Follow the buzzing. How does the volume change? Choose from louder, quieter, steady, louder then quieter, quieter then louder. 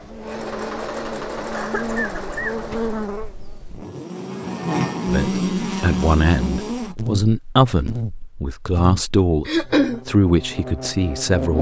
louder then quieter.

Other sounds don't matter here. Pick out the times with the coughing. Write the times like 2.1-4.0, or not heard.
1.5-2.8, 9.4-10.0.